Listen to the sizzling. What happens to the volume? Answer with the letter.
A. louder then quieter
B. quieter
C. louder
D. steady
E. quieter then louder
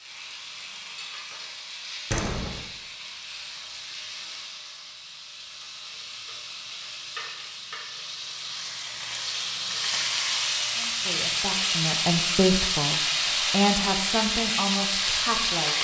C.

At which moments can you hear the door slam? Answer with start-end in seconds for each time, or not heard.
2.1-2.6.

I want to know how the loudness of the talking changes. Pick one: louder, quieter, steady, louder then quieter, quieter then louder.
louder then quieter.